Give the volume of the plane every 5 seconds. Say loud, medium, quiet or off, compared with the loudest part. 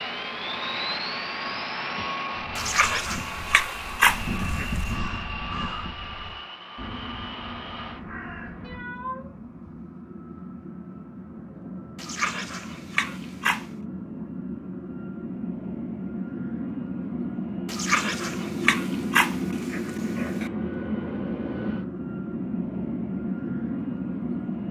loud, medium, medium, loud, loud.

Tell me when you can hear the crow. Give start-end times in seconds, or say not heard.
0.2-8.8.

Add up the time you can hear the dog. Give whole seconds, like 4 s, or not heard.
7 s.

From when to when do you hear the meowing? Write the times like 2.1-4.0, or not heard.
8.6-9.8.